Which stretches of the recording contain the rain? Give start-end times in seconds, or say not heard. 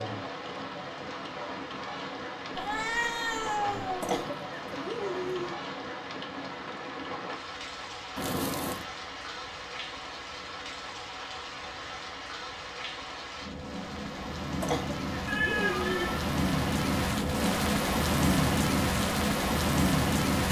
0.0-20.4.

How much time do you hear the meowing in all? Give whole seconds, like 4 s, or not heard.
3 s.